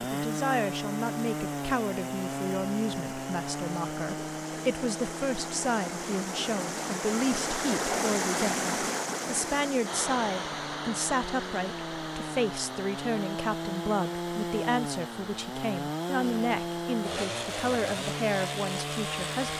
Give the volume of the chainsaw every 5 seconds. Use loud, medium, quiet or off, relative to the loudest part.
loud, medium, loud, loud.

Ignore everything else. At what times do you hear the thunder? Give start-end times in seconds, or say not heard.
not heard.